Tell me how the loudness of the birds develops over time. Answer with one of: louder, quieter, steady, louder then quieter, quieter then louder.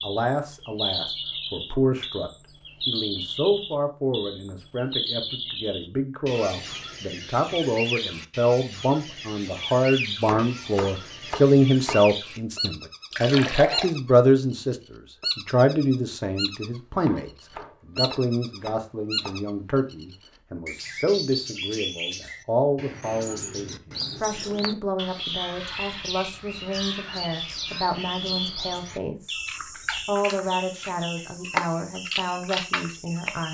steady.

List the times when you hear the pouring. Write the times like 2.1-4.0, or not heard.
13.1-13.9.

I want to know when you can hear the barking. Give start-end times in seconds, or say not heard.
not heard.